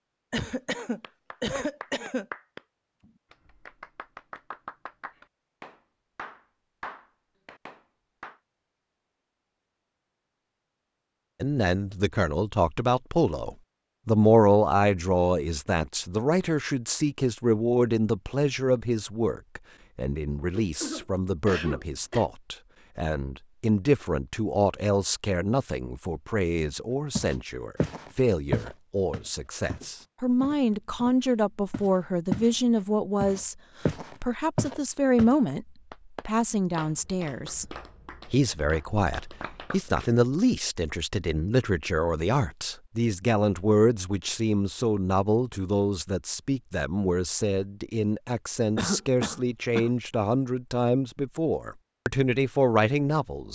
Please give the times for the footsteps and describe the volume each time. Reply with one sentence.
You can hear the footsteps from 27.1 to 32.5 s, getting quieter; and briefly from 33.2 to 35.4 s.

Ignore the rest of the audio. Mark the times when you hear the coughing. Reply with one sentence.
The coughing can be heard from 0.3 to 2.2 s, from 20.6 to 22.3 s and from 48.8 to 49.9 s.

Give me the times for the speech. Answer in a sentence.
You can hear the speech from 11.4 to 35.6 s and from 36.2 to 53.4 s.